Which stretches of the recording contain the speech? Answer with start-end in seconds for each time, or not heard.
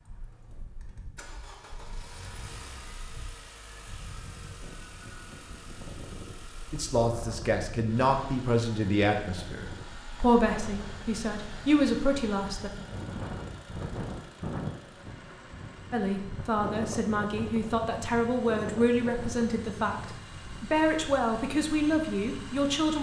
6.7-12.7, 15.9-22.9.